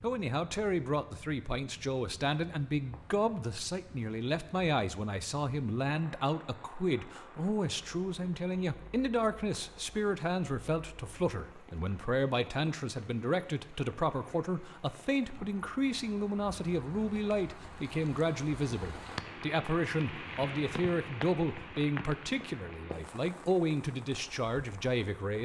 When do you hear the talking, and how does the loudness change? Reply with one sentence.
The talking can be heard from 0.0 to 25.4 s, at a steady volume.